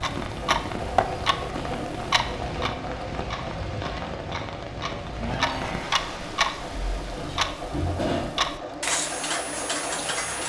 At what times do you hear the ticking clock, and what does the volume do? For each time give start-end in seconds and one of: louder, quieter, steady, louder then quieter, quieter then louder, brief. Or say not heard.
0.0-10.4 quieter then louder.